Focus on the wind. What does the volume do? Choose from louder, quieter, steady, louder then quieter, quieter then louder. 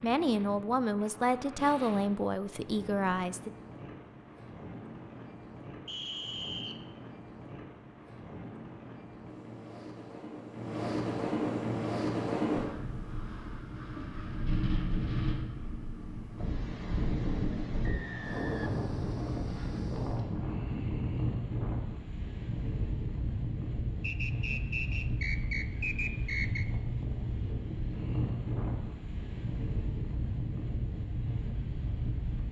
louder.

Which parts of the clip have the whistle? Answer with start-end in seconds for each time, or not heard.
5.8-6.8, 17.8-19.4, 24.0-26.6.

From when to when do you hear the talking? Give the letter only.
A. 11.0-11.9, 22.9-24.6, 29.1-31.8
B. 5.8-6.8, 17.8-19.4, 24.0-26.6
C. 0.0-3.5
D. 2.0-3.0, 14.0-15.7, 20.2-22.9
C.